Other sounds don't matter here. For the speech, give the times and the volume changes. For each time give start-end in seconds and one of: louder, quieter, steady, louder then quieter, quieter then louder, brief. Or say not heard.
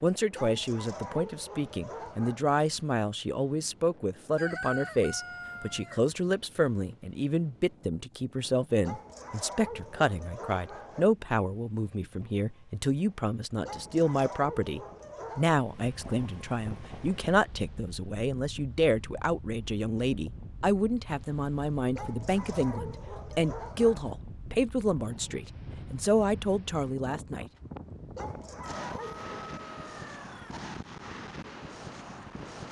0.0-27.4 steady.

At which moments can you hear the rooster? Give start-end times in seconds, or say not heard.
4.3-6.1, 28.9-30.6.